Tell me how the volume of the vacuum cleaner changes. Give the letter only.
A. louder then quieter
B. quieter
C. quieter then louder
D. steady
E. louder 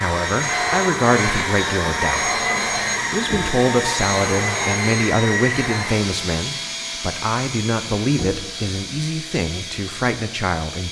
B.